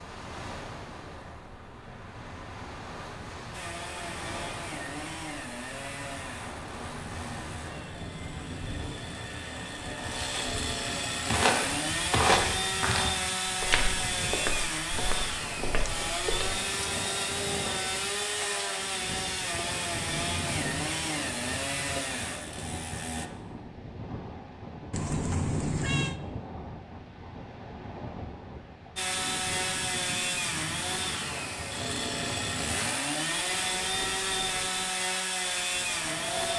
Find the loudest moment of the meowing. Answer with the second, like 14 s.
26 s.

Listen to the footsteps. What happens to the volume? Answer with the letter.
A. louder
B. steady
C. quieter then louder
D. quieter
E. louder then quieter
D.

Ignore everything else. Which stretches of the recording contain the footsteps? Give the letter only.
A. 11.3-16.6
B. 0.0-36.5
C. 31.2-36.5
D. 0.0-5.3
A.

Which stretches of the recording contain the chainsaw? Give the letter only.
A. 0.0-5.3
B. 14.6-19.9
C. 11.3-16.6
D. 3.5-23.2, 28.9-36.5
D.